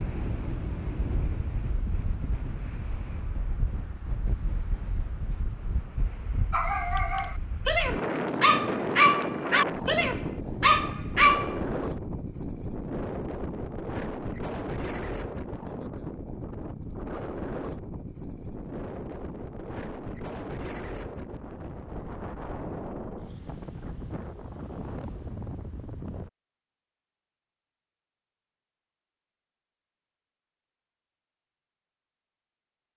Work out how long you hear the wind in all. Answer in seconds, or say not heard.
26 s.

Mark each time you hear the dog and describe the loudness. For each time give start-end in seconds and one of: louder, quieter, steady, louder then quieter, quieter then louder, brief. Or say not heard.
6.5-11.6 louder.